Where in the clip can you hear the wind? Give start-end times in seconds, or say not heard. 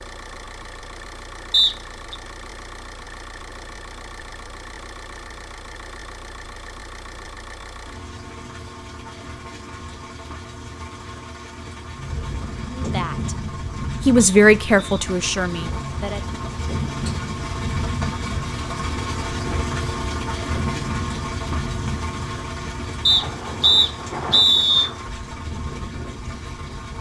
11.9-26.9.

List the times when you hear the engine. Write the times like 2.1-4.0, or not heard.
0.0-26.9.